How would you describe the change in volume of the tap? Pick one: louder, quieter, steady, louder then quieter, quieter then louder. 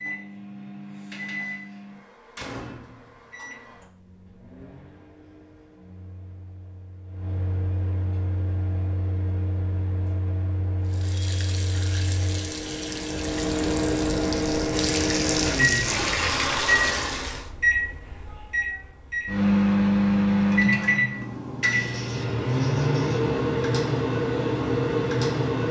louder.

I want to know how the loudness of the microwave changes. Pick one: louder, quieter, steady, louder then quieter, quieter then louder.
louder.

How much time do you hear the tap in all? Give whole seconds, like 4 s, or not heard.
7 s.